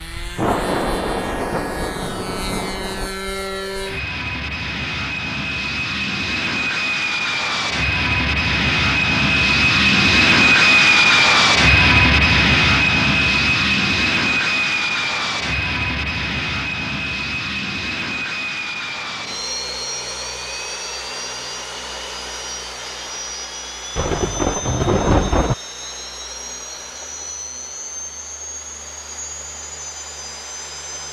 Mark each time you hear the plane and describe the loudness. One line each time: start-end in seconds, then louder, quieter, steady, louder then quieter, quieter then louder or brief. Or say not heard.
0.0-31.0 louder then quieter.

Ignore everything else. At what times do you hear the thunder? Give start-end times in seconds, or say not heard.
0.3-3.1, 23.9-25.6.